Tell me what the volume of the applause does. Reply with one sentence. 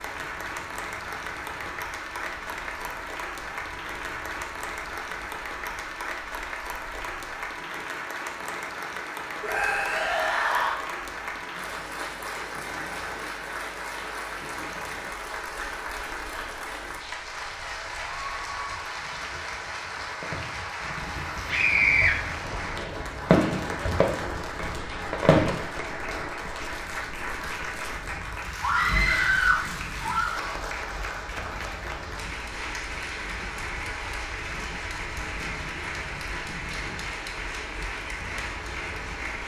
The volume of the applause stays about the same.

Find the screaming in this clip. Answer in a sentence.
The screaming can be heard from 9.4 to 10.8 s, from 21.4 to 22.1 s and from 28.6 to 30.5 s.